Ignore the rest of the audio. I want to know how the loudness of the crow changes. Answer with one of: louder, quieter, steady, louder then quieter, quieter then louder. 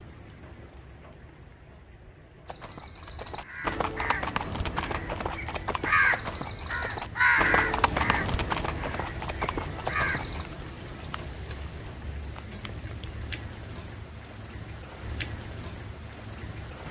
louder then quieter.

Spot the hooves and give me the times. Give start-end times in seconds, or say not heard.
2.5-10.4.